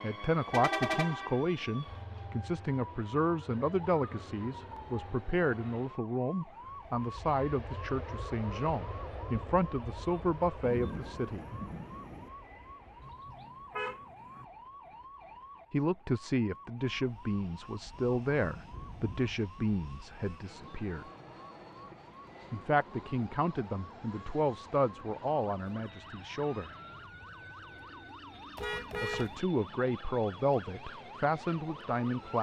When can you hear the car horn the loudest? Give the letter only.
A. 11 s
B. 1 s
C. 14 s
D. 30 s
B.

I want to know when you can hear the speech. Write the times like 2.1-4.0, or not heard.
0.0-11.4, 15.7-21.1, 22.5-26.7, 29.0-32.3.